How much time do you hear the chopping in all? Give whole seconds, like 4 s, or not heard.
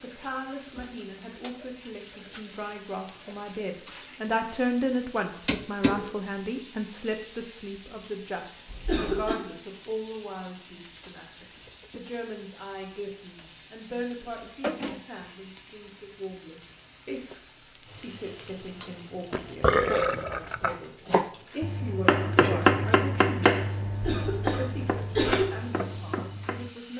6 s.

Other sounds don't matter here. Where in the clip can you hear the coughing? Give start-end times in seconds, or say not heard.
8.7-9.3, 23.9-25.4.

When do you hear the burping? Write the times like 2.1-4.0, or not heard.
19.3-20.8.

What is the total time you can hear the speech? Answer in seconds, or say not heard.
26 s.